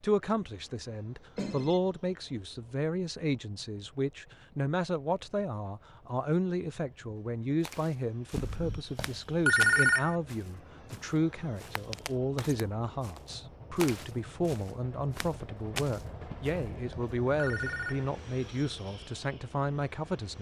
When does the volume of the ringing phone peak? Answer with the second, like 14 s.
10 s.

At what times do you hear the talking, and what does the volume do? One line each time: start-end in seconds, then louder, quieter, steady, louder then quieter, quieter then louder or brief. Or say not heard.
0.0-20.3 steady.